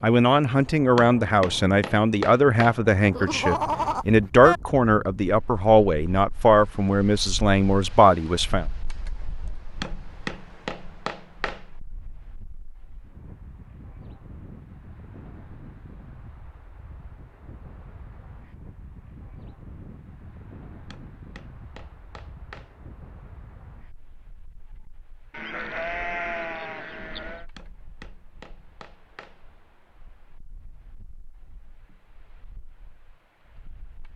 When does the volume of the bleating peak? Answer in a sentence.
The volume of the bleating peaks at 4 seconds.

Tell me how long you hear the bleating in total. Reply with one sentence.
The bleating can be heard for 4 seconds in total.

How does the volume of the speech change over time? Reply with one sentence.
The loudness of the speech stays about the same.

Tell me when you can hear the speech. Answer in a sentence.
The speech can be heard from 0.0 to 8.7 s.